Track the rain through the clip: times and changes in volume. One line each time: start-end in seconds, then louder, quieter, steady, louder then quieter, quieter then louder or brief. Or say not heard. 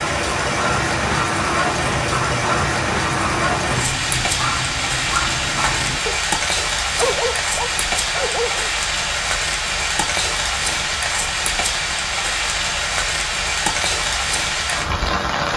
0.0-15.5 steady.